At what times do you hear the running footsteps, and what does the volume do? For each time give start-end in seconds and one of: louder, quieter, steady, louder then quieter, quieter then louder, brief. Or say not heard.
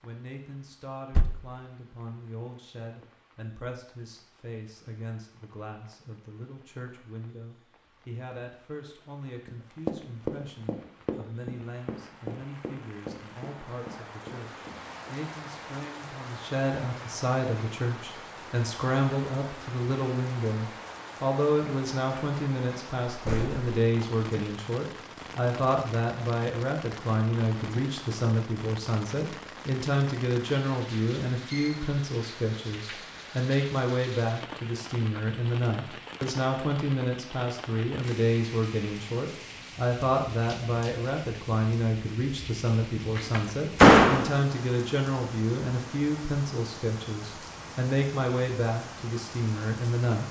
9.4-15.2 quieter.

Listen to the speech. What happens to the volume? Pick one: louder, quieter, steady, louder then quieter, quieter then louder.
louder.